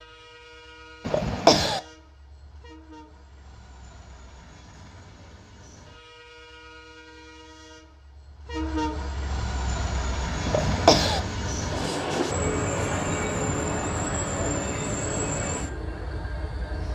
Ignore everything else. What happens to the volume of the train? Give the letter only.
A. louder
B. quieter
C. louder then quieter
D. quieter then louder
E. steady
A.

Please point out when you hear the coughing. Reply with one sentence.
The coughing can be heard from 1.1 to 1.8 s and from 10.4 to 11.2 s.